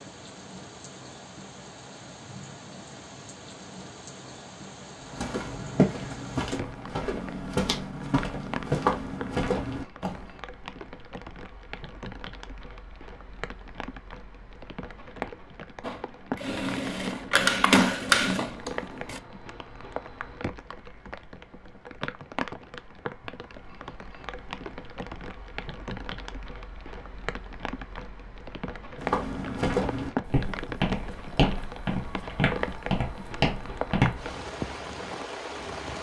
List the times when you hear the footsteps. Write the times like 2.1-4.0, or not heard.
5.0-10.3, 28.9-34.3.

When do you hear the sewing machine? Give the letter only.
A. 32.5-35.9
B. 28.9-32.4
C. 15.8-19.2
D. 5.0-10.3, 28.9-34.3
C.